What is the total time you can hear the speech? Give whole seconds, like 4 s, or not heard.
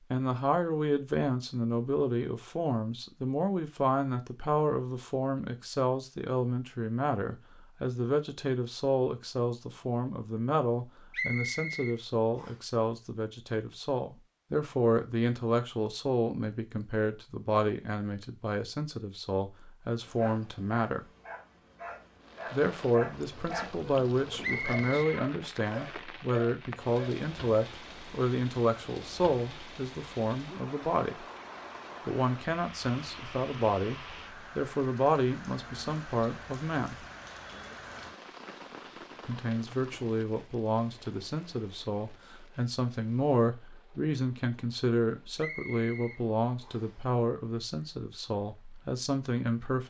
45 s.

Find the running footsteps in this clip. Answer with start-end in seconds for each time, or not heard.
not heard.